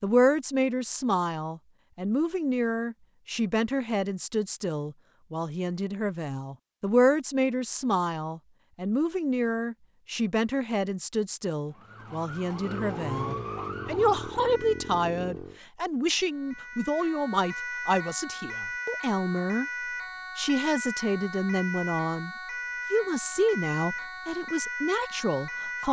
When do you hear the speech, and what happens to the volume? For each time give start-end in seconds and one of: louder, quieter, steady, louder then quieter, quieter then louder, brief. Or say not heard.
0.0-19.6 steady
20.4-22.3 brief
22.9-25.8 brief.